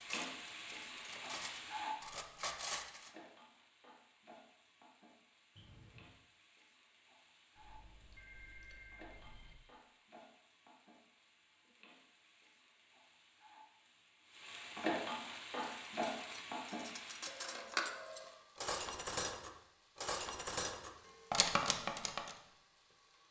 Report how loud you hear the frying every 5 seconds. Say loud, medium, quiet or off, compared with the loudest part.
loud, quiet, loud, loud, quiet.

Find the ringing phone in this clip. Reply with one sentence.
The ringing phone can be heard from 5.5 to 6.2 s, from 8.2 to 9.6 s and from 17.2 to 18.6 s.